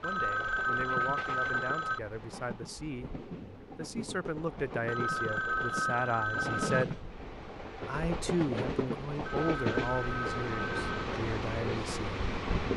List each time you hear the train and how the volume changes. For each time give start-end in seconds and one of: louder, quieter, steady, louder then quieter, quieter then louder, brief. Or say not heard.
0.0-12.7 louder.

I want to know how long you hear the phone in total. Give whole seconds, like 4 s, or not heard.
6 s.